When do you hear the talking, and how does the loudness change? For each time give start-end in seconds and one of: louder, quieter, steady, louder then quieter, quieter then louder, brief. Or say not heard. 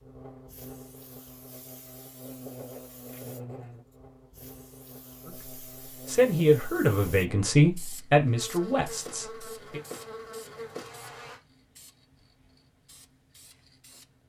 5.2-9.8 quieter.